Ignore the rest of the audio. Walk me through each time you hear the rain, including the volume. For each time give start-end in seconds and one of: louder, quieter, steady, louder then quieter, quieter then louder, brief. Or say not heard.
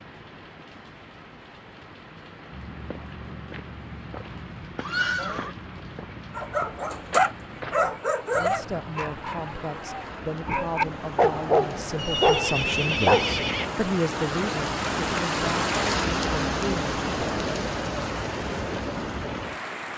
0.0-19.9 louder.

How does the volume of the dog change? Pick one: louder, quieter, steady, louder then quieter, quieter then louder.
quieter then louder.